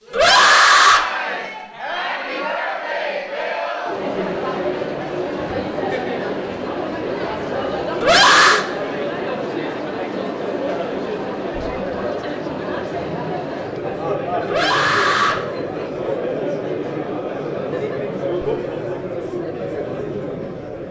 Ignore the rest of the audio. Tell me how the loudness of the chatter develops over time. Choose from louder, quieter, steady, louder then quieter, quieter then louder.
steady.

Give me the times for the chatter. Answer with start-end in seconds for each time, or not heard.
0.0-20.8.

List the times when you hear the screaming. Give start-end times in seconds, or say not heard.
0.1-1.1, 8.0-8.7, 14.4-15.4.